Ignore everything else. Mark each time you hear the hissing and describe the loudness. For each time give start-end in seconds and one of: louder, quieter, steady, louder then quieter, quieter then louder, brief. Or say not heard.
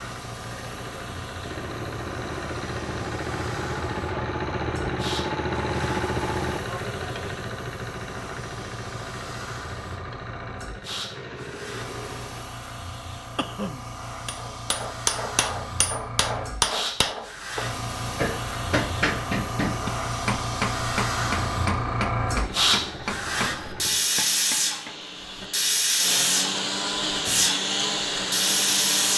0.0-29.1 louder.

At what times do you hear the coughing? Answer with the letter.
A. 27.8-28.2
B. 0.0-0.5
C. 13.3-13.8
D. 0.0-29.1
C.